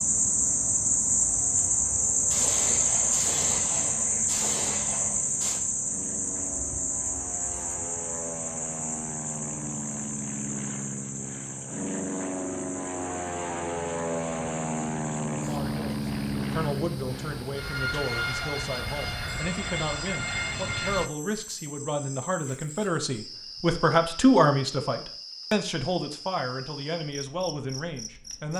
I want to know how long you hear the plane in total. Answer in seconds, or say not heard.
21 s.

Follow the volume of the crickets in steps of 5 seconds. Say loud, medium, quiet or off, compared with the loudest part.
loud, medium, quiet, quiet, quiet, quiet.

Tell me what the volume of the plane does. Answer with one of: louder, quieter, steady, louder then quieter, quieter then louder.
louder.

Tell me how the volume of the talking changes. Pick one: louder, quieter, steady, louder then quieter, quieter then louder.
louder then quieter.